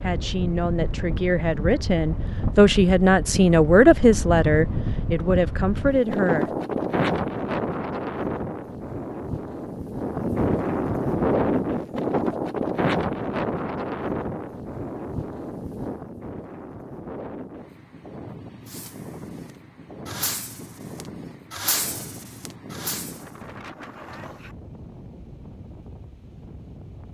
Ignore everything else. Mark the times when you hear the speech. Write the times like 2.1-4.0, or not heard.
0.0-6.5.